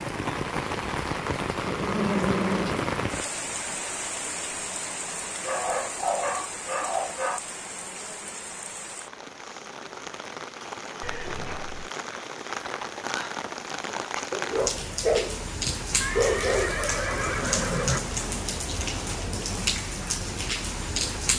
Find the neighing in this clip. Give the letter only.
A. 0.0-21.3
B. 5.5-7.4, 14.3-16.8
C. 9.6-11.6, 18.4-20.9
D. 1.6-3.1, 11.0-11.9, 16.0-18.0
D.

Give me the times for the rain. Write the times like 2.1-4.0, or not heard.
0.0-21.3.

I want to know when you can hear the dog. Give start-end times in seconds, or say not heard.
5.5-7.4, 14.3-16.8.